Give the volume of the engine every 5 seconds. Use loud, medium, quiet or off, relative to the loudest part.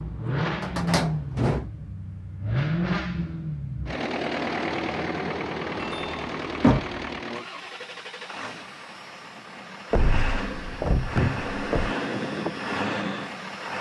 loud, medium, loud.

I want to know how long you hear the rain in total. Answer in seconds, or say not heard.
not heard.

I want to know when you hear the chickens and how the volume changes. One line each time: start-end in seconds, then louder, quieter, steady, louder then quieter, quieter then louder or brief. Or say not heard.
not heard.